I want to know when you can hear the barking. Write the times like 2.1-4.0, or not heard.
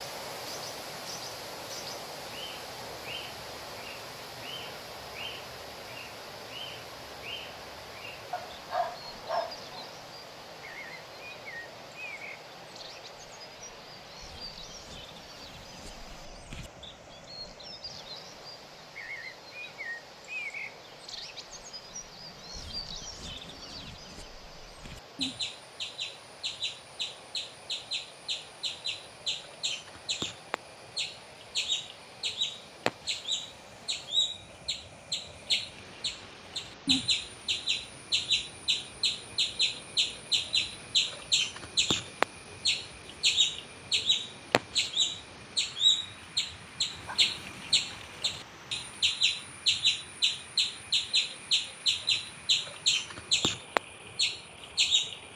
8.3-9.9, 46.9-48.9.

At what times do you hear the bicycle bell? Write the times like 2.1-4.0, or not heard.
not heard.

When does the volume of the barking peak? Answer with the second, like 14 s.
9 s.